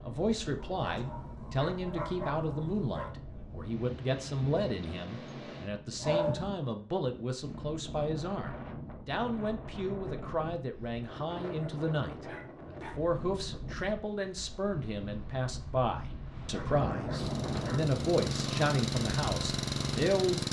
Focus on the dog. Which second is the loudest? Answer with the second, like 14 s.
6 s.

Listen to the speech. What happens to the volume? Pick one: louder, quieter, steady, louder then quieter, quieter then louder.
steady.